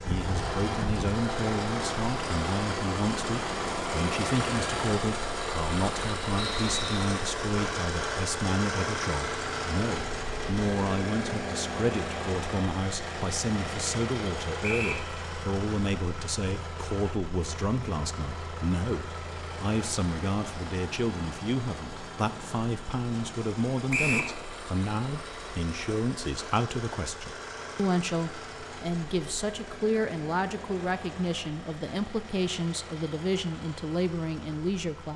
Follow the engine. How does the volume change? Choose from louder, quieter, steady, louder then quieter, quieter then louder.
quieter.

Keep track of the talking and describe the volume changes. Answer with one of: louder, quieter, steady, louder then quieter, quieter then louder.
steady.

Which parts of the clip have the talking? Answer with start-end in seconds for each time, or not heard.
0.0-35.1.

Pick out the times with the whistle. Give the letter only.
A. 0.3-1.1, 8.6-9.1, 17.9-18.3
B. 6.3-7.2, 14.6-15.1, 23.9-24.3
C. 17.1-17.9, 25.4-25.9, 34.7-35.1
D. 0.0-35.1
B.